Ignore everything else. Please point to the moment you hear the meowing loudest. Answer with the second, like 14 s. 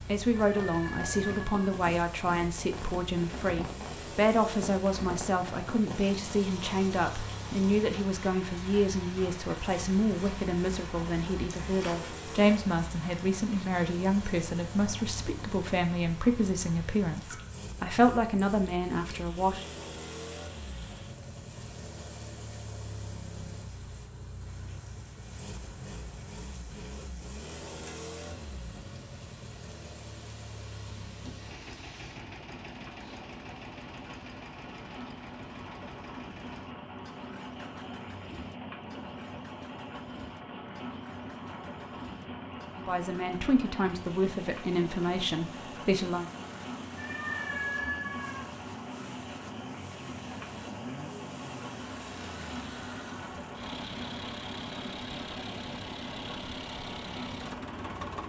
48 s.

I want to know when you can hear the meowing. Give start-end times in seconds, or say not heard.
0.4-1.8, 47.0-48.5.